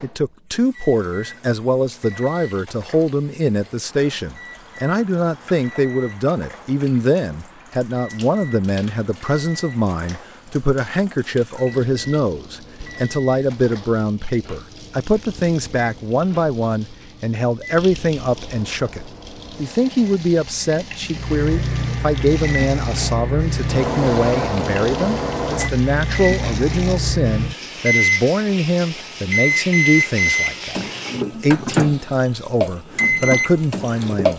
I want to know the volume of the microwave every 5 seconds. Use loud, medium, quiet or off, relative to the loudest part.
quiet, quiet, quiet, quiet, loud, loud, loud.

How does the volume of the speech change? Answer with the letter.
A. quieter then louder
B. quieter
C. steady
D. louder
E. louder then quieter
C.